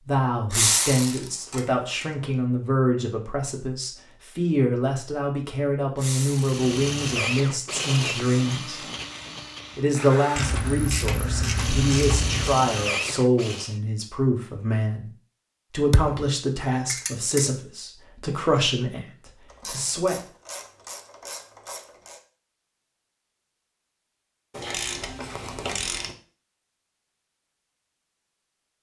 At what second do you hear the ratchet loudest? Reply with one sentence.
The loudest moment of the ratchet is at 1 second.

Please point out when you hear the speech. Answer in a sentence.
The speech can be heard from 0.1 to 8.8 s, from 9.8 to 15.1 s and from 15.7 to 20.2 s.